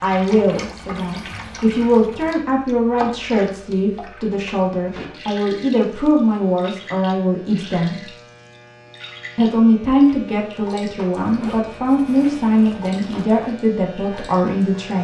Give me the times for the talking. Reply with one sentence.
The talking can be heard from 0.0 to 8.1 s and from 9.3 to 14.9 s.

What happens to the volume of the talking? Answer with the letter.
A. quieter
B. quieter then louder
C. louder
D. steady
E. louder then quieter
D.